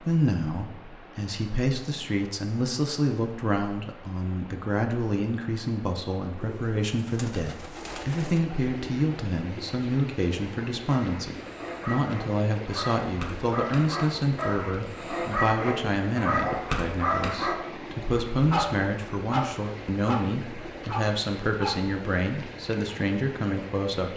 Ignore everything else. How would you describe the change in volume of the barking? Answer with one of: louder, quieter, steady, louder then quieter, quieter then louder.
louder then quieter.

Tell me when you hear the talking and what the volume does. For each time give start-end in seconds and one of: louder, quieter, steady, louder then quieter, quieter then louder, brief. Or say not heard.
0.0-24.1 steady.